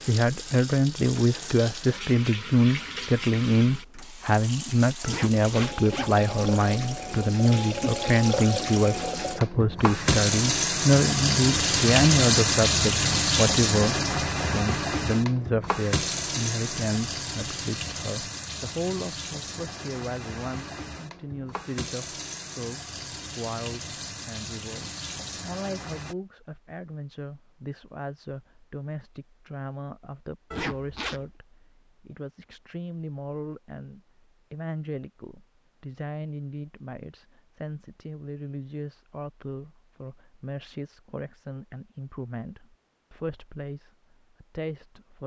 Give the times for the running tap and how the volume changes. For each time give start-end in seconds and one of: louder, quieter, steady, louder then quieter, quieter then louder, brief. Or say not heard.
0.0-26.1 louder then quieter.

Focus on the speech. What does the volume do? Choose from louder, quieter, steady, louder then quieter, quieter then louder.
quieter.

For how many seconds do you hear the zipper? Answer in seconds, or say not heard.
2 s.